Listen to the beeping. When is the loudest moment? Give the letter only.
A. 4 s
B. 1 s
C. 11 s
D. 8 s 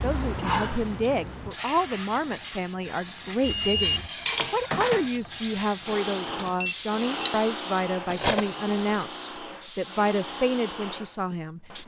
A.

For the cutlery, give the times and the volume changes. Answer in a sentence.
You can hear the cutlery from 3.6 to 8.9 s, getting quieter then louder.